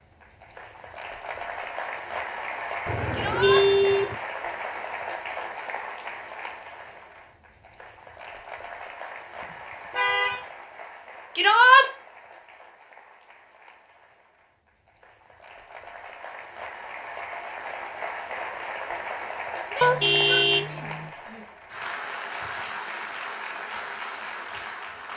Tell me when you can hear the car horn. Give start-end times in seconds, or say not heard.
2.9-4.2, 9.9-10.4, 19.8-21.1.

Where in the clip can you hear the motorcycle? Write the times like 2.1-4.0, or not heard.
not heard.